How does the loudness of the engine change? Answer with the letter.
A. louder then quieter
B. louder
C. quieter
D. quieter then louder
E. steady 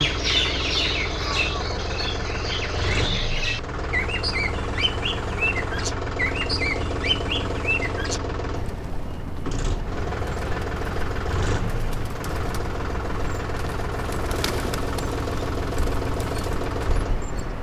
E.